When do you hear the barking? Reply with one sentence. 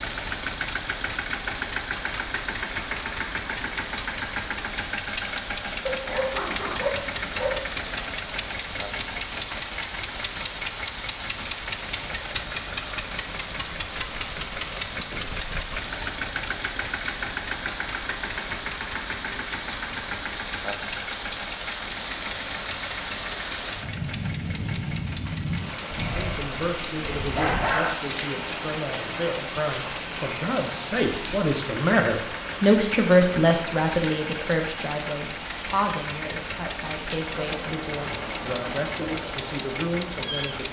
You can hear the barking from 5.8 to 7.5 s and from 25.9 to 27.9 s.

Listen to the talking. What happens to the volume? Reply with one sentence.
The loudness of the talking goes up, then down.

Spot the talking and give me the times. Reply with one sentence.
The talking can be heard from 26.1 to 40.6 s.